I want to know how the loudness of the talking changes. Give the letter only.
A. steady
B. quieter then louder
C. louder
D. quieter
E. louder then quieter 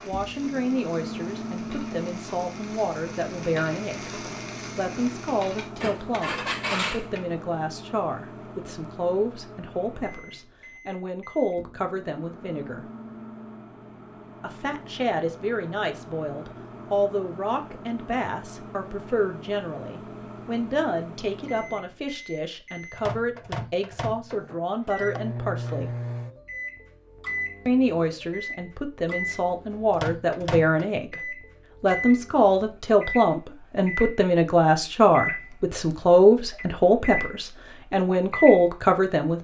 C.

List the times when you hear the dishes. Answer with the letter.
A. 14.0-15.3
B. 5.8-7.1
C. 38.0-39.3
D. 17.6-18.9
B.